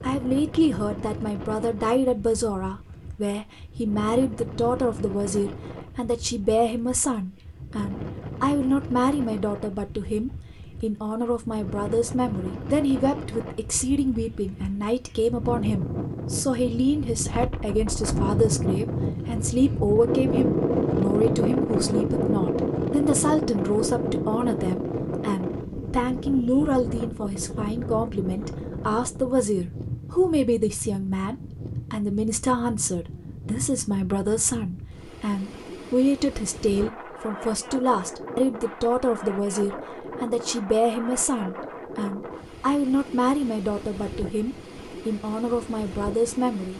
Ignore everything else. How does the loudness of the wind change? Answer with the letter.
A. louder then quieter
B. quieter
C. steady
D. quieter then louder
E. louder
A.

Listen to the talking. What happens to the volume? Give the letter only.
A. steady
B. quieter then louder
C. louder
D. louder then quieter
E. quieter
A.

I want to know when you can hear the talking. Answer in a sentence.
You can hear the talking from 0.0 to 46.7 s.